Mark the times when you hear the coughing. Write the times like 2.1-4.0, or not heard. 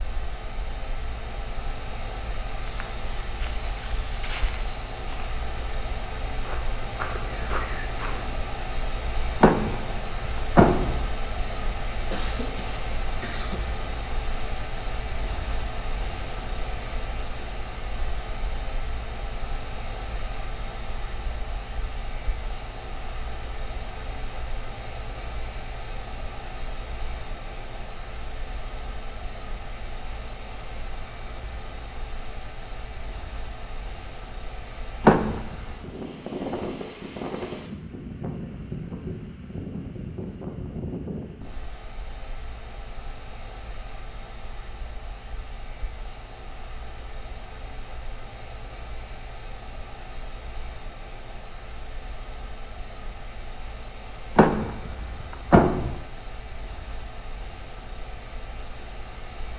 12.1-13.7.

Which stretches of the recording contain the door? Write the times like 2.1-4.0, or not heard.
9.4-11.0, 35.0-35.9, 54.4-56.0.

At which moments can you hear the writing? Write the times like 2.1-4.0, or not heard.
not heard.